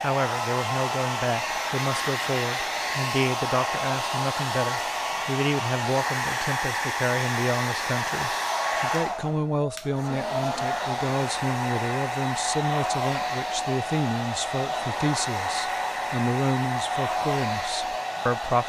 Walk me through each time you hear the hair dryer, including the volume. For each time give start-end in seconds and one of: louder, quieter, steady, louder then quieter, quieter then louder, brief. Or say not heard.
0.0-18.6 steady.